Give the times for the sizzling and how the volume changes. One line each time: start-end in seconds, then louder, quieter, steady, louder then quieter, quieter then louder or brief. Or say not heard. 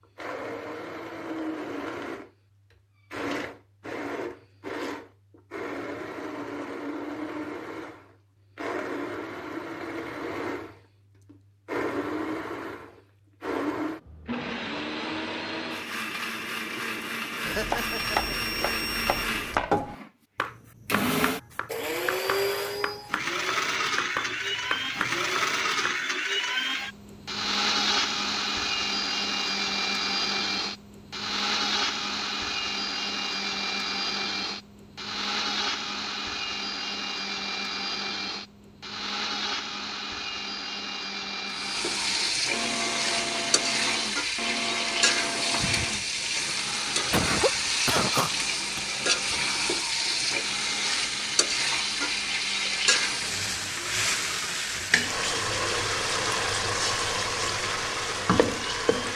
41.5-59.1 steady.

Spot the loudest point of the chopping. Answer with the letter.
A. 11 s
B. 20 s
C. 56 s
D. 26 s
B.